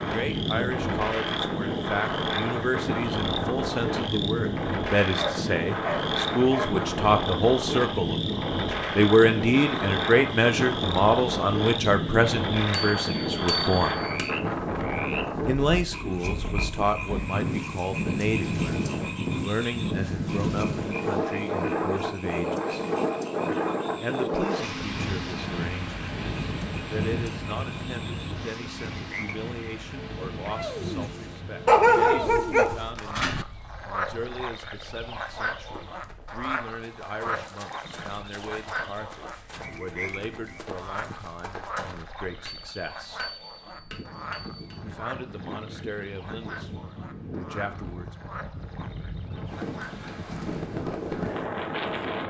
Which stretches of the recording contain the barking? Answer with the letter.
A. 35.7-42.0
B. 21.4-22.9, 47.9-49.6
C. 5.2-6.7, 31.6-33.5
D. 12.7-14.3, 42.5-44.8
C.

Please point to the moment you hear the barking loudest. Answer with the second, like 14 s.
32 s.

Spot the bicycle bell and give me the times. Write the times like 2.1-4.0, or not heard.
12.7-14.3, 42.5-44.8.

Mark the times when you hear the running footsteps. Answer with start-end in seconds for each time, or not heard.
35.7-42.0.